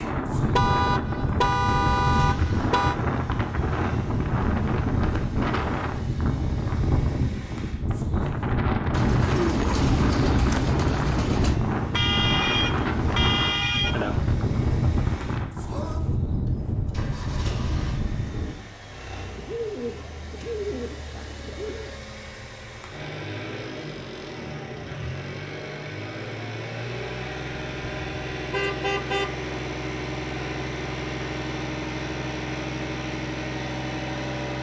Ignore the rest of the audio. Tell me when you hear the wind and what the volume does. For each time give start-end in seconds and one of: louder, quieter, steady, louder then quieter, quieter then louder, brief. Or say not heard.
0.0-18.6 steady.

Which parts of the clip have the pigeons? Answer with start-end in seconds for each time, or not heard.
8.9-11.6, 19.1-21.9.